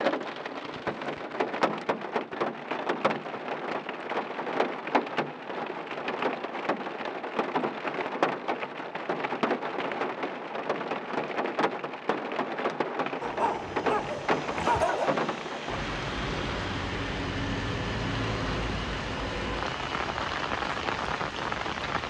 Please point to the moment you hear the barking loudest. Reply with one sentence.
The volume of the barking peaks at 15 seconds.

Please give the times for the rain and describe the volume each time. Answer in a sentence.
The rain can be heard from 0.0 to 22.0 s, at a steady volume.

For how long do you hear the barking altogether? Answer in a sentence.
You can hear the barking for 2 seconds altogether.